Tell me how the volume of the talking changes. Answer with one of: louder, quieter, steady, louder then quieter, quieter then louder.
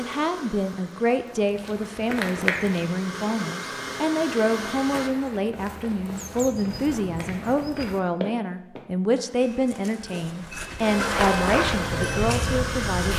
steady.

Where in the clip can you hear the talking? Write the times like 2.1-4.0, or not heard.
0.0-13.1.